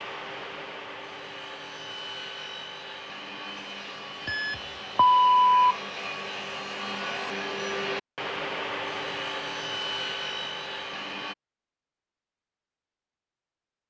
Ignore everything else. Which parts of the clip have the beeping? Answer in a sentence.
The beeping can be heard from 4.2 to 5.8 s.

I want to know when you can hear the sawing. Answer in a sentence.
The sawing can be heard from 0.0 to 11.3 s.